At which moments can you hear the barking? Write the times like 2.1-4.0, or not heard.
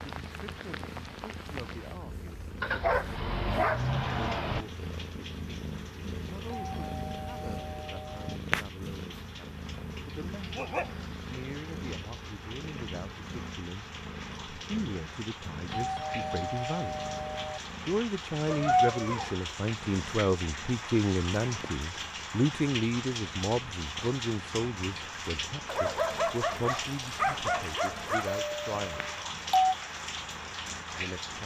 2.6-4.7, 10.4-11.1, 18.4-19.4, 25.6-28.4.